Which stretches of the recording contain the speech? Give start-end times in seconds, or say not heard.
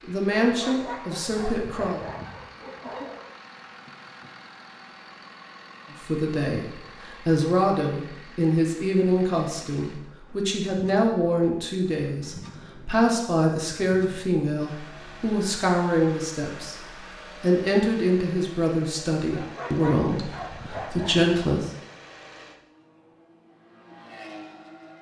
0.0-2.0, 5.9-16.8, 17.4-21.7.